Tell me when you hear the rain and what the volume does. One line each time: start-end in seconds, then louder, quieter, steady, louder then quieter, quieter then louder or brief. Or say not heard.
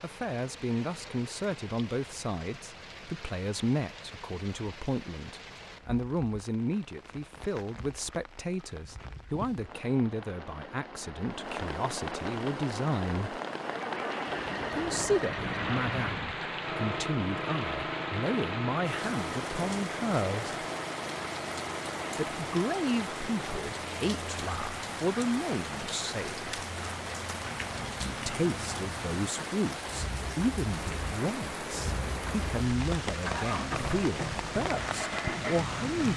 0.0-36.1 louder.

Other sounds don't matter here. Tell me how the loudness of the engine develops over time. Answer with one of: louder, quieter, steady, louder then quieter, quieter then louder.
quieter then louder.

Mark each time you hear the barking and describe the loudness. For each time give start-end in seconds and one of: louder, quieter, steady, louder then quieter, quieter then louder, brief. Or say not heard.
not heard.